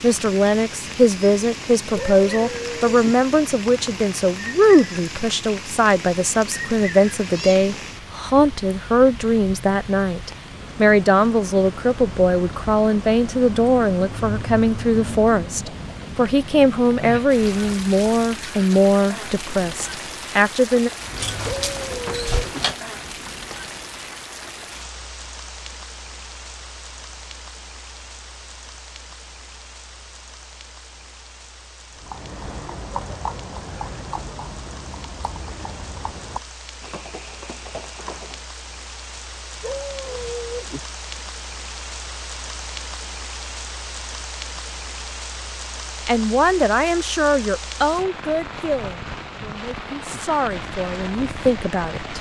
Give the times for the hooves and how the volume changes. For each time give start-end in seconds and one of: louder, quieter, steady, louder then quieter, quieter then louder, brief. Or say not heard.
31.9-38.5 quieter.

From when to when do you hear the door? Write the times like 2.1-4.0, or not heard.
21.2-22.8.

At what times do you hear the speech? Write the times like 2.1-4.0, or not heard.
0.0-20.9, 46.0-52.1.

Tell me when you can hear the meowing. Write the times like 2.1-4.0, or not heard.
not heard.